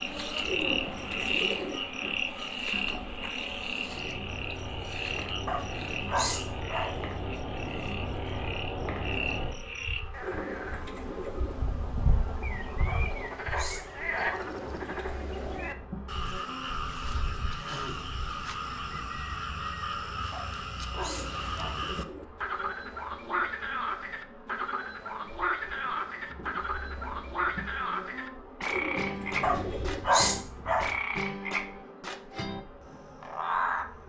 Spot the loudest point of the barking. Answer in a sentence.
The volume of the barking peaks at 30 seconds.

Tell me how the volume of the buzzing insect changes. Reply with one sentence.
The volume of the buzzing insect goes down.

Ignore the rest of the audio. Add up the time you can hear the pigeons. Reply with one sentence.
The pigeons can be heard for 7 seconds in total.